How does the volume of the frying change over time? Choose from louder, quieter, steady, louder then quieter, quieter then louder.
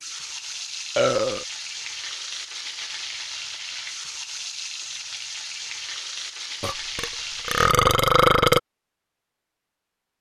steady.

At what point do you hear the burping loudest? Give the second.
8 s.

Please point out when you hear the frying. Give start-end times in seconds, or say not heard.
0.0-7.8.